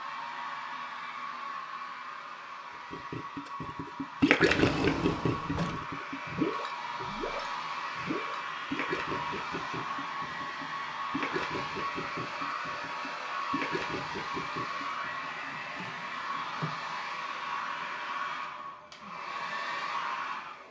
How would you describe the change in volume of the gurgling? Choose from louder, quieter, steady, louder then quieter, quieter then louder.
quieter.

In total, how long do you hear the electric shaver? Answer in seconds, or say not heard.
not heard.